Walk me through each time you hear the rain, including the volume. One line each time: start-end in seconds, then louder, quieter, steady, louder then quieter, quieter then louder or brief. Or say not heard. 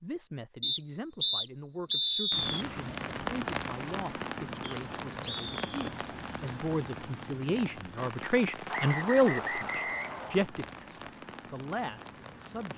2.3-12.7 quieter.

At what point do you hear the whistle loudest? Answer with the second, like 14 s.
2 s.